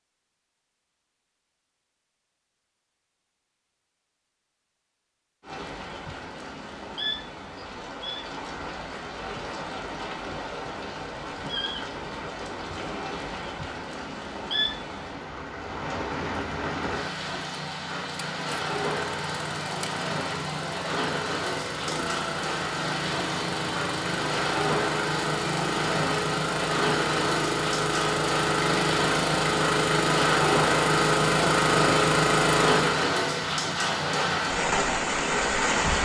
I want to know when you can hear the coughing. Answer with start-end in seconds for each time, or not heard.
not heard.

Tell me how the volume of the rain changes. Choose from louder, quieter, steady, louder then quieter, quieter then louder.
louder.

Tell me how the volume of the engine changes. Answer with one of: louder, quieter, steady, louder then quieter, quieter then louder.
louder.